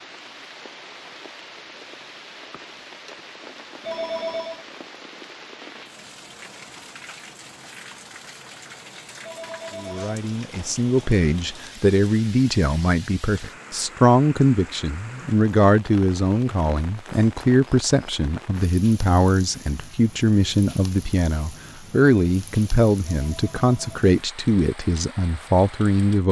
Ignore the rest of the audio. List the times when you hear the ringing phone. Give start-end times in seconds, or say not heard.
3.8-4.7, 9.2-10.2, 23.1-23.9.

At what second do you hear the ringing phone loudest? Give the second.
4 s.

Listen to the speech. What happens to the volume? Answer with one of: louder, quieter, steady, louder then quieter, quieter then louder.
steady.